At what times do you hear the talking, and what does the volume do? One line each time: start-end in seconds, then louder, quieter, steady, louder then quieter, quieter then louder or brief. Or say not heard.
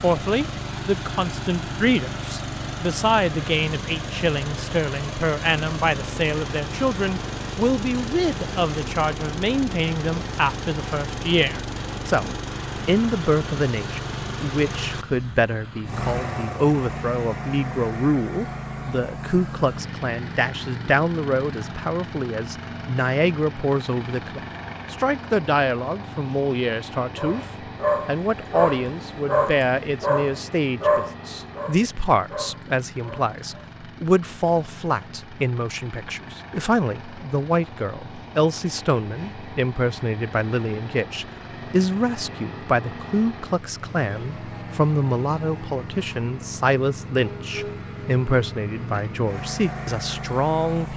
0.0-27.4 steady
28.1-50.9 steady.